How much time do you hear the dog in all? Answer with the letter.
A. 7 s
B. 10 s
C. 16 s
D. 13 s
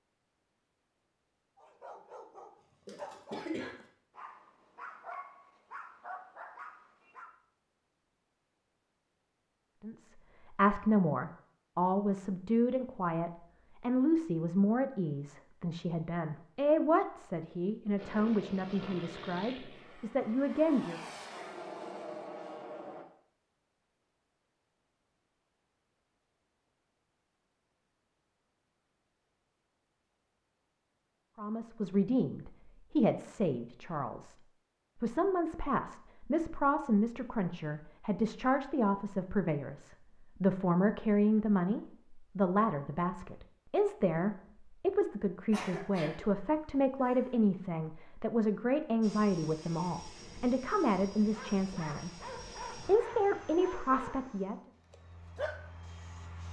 B.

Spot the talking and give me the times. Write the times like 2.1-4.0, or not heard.
9.8-21.0, 31.4-34.4, 35.0-54.5.